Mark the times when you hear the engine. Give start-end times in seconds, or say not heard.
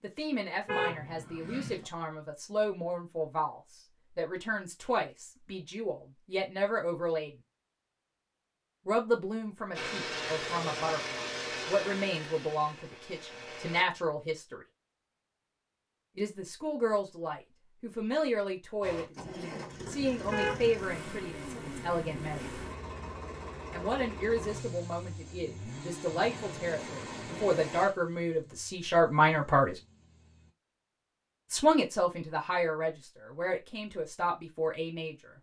9.7-13.8, 18.8-30.6.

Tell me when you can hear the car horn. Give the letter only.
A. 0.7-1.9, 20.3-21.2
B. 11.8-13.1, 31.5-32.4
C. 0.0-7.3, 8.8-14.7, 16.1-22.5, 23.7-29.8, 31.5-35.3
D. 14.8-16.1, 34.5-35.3
A.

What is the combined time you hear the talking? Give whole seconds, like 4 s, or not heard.
29 s.